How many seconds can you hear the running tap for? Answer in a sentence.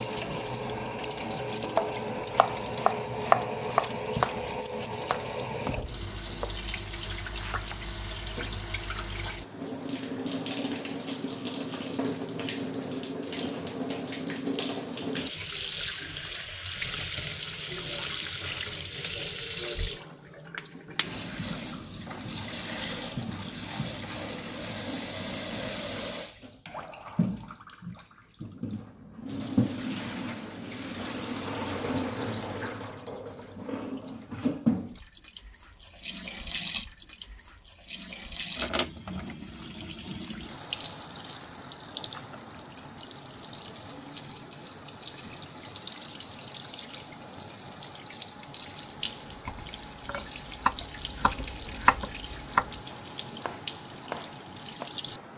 The running tap can be heard for 55 seconds in total.